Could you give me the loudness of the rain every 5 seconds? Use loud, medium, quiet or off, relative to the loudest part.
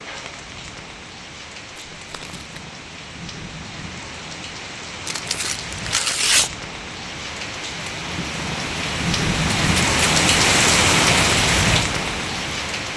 quiet, medium, loud.